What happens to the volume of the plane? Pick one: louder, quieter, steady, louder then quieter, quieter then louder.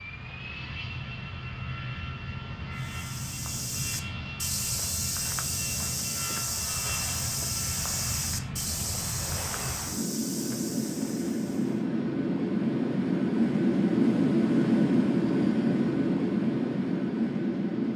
louder.